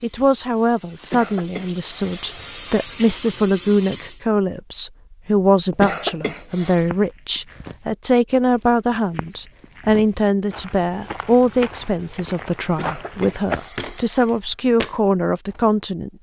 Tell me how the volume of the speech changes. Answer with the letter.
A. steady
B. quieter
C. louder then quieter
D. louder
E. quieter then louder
A.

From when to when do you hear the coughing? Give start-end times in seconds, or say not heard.
1.0-2.5, 5.7-6.9, 12.7-14.4.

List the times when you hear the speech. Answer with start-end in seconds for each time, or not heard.
0.0-16.1.